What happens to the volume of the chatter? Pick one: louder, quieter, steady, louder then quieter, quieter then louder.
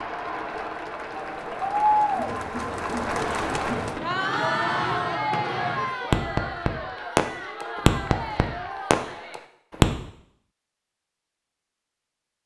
quieter.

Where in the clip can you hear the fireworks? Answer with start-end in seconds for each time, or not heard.
3.3-9.8.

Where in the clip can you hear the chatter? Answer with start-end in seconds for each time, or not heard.
0.0-9.4.